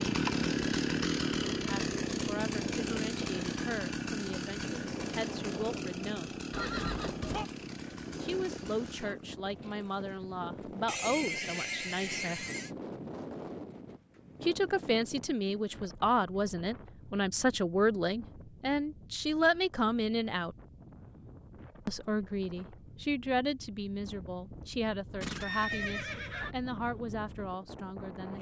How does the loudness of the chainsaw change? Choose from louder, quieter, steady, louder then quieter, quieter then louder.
quieter.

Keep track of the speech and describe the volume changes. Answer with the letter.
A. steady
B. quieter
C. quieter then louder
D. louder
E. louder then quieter
E.